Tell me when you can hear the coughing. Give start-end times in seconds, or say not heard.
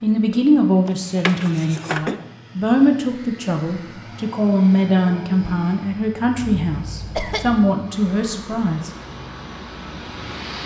0.8-2.1, 6.4-7.7.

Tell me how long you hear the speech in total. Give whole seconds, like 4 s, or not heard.
9 s.